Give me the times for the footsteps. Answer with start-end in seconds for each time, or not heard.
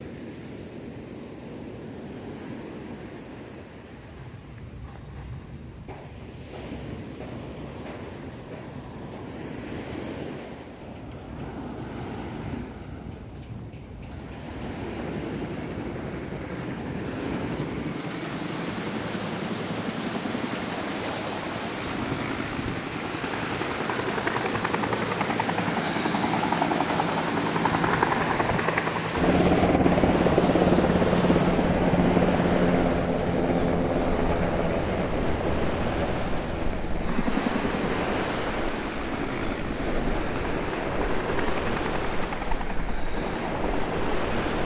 not heard.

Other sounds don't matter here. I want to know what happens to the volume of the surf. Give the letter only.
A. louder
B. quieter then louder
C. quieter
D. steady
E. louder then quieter
A.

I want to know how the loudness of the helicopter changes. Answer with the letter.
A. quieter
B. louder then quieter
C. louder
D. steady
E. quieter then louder
B.